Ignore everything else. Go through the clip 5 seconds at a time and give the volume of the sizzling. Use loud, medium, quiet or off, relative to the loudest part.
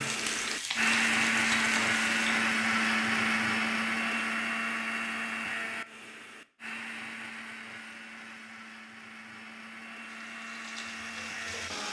loud, off, medium.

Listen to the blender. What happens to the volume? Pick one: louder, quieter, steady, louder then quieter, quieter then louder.
quieter.